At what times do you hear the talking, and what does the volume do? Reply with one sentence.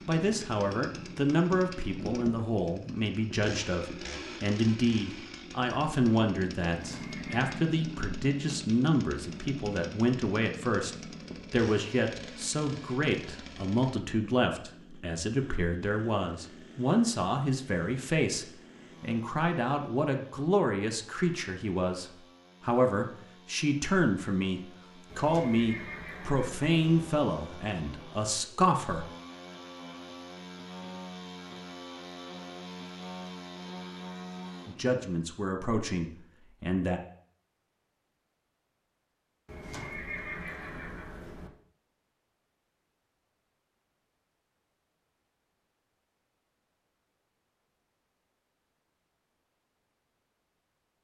You can hear the talking from 0.1 to 29.1 s, at a steady volume; and briefly from 34.6 to 37.0 s.